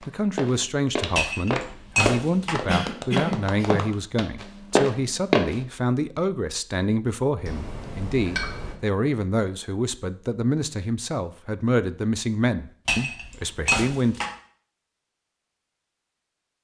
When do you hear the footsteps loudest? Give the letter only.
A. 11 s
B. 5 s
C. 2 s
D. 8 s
B.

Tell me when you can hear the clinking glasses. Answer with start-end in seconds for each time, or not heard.
1.1-2.5, 7.5-8.8, 12.8-14.3.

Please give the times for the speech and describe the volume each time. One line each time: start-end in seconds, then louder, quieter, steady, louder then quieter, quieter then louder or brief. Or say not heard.
0.0-14.2 steady.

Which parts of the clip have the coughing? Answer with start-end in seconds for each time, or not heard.
2.6-3.9.